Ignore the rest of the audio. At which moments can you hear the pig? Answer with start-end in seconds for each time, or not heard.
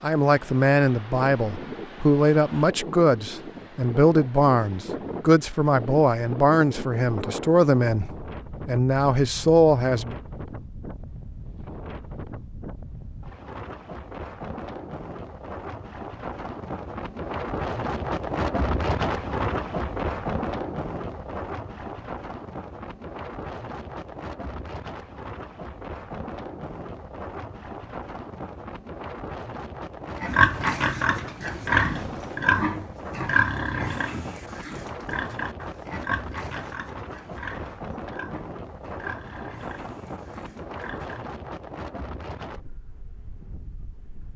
30.1-41.2.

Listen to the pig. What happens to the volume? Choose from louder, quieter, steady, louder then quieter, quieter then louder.
quieter.